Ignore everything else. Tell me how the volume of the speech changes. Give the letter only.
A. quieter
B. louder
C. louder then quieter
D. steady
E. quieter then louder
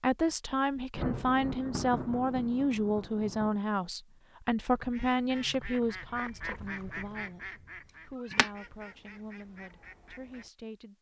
A.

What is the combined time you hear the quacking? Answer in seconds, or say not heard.
6 s.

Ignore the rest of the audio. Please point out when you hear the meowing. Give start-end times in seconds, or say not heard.
7.8-8.5.